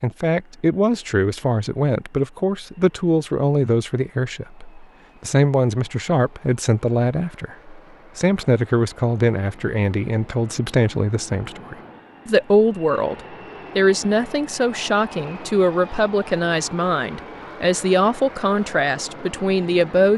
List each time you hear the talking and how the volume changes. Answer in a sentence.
You can hear the talking from 0.0 to 20.1 s, at a steady volume.